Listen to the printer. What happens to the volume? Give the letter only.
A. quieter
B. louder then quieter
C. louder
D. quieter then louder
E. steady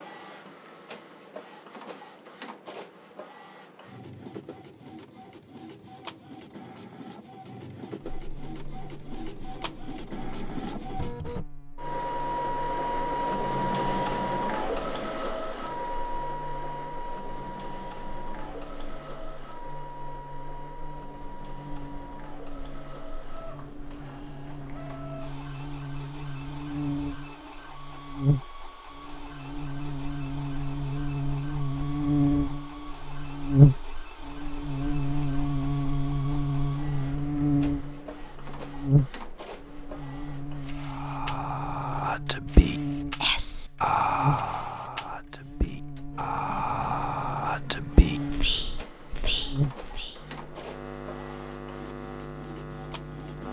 B.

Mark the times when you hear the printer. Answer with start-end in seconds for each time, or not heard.
0.0-53.4.